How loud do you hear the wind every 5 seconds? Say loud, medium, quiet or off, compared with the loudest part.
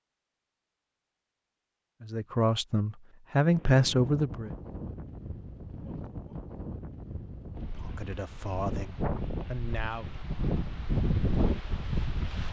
medium, medium, loud.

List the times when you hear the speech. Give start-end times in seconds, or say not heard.
2.0-4.5, 7.7-10.1.